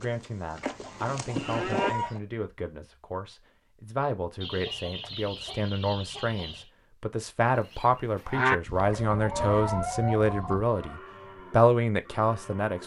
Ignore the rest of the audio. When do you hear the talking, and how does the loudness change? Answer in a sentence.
The talking can be heard from 0.0 to 12.8 s, getting louder.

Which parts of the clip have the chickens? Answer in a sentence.
The chickens can be heard from 0.6 to 2.2 s, from 4.4 to 6.7 s and from 8.8 to 10.9 s.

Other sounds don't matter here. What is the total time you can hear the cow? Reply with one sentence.
The cow can be heard for 7 seconds in total.